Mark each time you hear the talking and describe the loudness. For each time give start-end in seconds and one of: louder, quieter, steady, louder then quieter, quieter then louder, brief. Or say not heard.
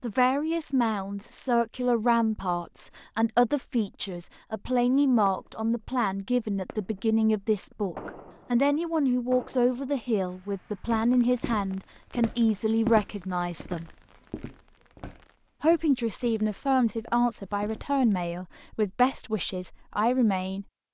0.0-13.9 steady
15.6-20.6 steady.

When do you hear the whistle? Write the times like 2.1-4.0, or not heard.
not heard.